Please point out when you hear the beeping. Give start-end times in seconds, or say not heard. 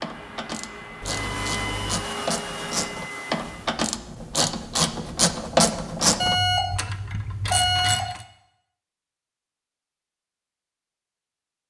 1.0-2.0, 6.2-8.1.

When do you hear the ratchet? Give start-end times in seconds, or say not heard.
0.0-8.2.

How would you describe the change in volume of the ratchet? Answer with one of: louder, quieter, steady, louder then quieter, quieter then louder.
louder then quieter.